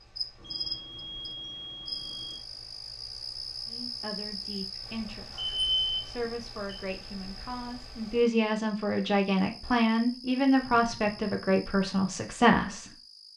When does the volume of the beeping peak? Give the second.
6 s.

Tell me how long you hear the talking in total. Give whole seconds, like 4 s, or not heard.
9 s.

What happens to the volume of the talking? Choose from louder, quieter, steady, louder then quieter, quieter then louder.
louder.